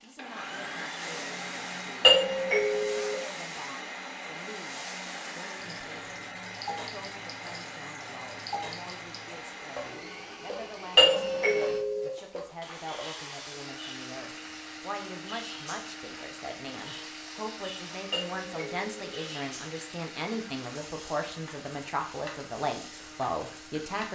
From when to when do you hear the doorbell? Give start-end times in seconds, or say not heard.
2.0-3.1, 10.9-12.1, 18.1-19.0.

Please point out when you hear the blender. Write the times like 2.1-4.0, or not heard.
0.0-24.0.